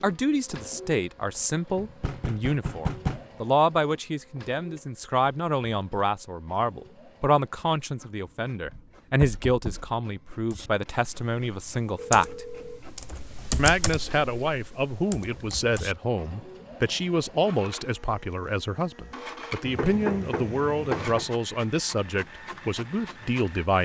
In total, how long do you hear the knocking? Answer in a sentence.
You can hear the knocking for 4 seconds altogether.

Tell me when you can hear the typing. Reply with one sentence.
The typing can be heard from 10.5 to 15.9 s.